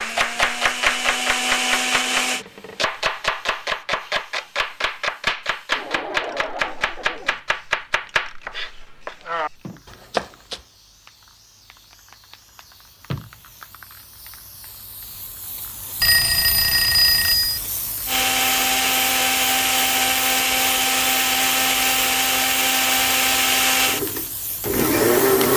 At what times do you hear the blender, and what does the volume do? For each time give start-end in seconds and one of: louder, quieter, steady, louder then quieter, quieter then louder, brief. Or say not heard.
0.0-2.5 brief
18.1-25.5 steady.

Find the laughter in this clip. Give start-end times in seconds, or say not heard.
5.7-7.4.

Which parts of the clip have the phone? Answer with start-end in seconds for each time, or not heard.
16.0-17.6.